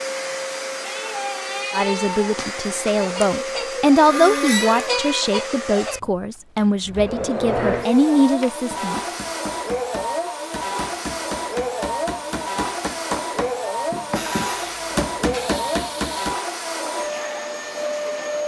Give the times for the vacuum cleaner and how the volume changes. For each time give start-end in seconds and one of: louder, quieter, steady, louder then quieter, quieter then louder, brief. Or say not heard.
0.0-18.4 steady.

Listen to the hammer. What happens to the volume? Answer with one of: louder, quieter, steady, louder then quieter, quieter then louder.
louder.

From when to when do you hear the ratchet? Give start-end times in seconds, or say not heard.
14.2-16.4.